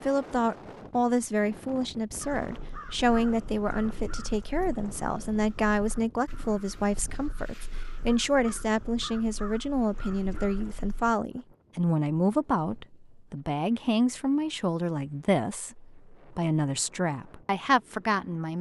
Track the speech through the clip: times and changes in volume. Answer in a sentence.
You can hear the speech from 0.0 to 18.5 s, at a steady volume.